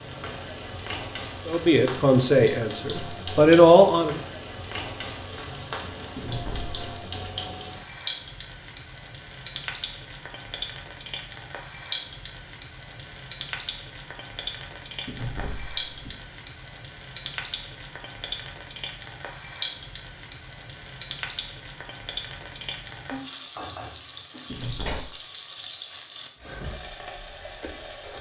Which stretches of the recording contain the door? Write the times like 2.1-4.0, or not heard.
6.2-7.3, 15.1-16.1, 24.4-25.1.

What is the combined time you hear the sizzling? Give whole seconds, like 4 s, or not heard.
28 s.